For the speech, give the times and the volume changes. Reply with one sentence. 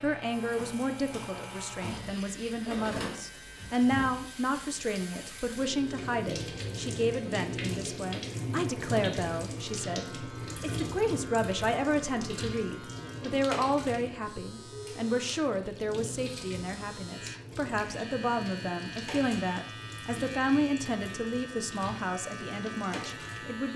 The speech can be heard from 0.0 to 23.7 s, at a steady volume.